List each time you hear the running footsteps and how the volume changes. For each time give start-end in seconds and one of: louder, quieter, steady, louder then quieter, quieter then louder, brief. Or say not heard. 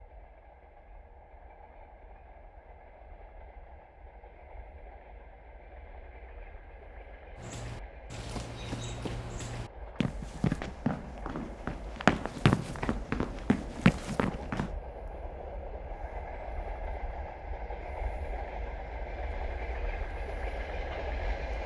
7.3-14.7 louder.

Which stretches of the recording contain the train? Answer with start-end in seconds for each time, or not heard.
0.0-21.6.